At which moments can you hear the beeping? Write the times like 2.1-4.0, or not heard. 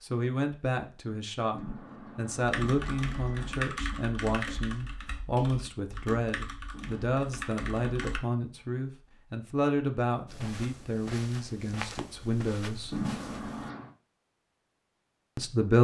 1.5-3.5, 6.7-8.2, 12.9-13.9.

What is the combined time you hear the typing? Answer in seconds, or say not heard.
6 s.